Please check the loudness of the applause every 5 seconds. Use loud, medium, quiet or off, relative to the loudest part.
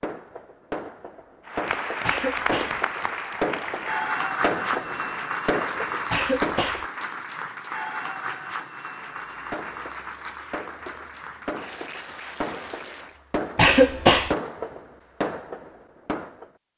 loud, loud, medium, off.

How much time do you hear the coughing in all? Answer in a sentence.
The coughing can be heard for 2 seconds in total.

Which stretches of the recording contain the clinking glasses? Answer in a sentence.
The clinking glasses can't be heard in this clip.